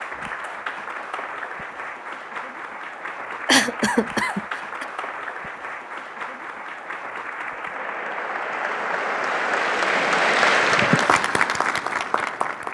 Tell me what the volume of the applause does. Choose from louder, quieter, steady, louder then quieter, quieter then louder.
louder.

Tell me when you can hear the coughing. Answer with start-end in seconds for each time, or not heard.
3.5-4.8.